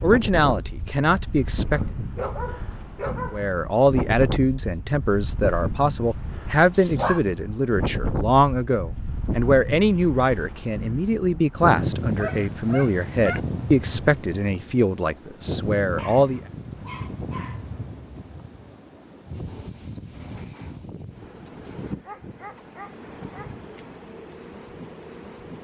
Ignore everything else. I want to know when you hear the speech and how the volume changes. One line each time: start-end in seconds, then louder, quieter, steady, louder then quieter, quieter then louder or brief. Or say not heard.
0.0-1.8 brief
3.3-16.4 steady.